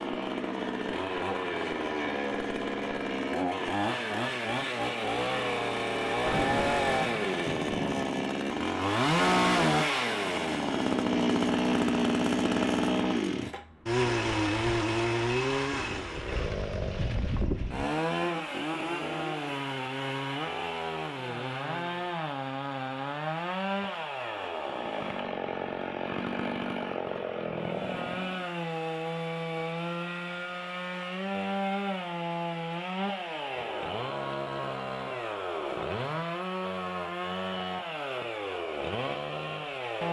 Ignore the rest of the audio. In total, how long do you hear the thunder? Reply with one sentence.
The thunder can be heard for 2 seconds in total.